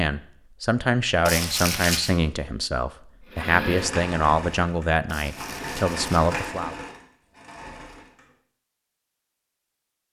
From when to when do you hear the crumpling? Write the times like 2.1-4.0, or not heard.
1.2-2.1, 5.0-6.3.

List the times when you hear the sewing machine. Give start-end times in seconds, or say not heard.
3.2-8.3.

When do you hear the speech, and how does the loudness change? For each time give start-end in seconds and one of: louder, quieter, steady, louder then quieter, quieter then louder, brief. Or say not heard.
0.0-6.8 steady.